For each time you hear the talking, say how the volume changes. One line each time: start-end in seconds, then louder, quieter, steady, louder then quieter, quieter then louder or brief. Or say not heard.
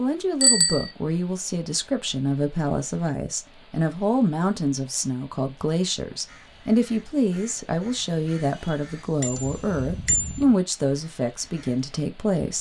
0.0-12.5 steady.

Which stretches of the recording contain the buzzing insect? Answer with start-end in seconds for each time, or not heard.
not heard.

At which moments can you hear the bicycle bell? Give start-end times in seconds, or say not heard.
0.4-0.9, 9.2-10.4.